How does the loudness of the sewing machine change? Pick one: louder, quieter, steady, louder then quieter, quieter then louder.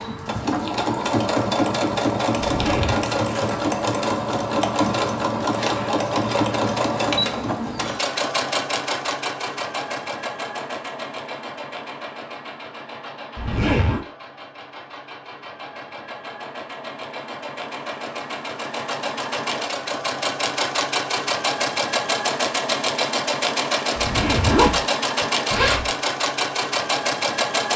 quieter then louder.